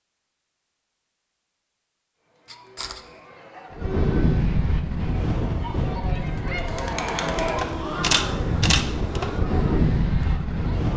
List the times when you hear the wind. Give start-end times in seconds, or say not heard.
3.7-10.9.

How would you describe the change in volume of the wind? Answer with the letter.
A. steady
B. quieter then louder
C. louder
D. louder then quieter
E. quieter
B.